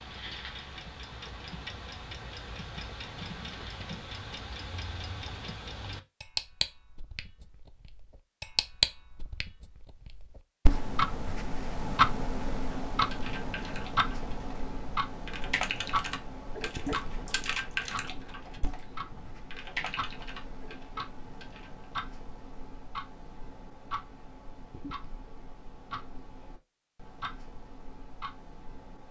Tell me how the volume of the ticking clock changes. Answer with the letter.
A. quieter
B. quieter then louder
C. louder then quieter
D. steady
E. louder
C.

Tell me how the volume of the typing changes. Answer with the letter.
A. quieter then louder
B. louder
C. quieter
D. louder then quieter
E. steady
D.